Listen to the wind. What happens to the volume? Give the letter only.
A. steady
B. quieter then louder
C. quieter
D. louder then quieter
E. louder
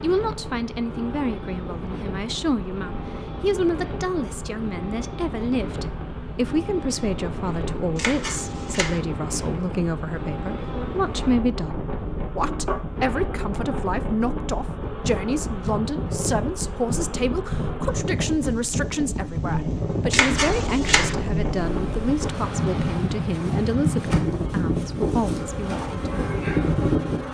E.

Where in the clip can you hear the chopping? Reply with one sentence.
The chopping can be heard from 8.0 to 9.0 s and from 20.1 to 21.1 s.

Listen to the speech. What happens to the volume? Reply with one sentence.
The loudness of the speech stays about the same.